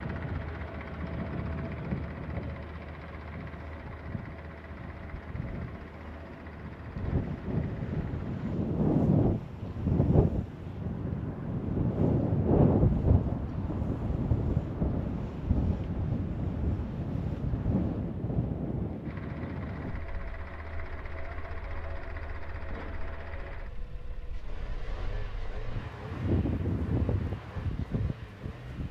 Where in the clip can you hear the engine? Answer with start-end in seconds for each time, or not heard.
0.0-8.6, 19.0-28.8.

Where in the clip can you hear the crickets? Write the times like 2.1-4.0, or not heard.
not heard.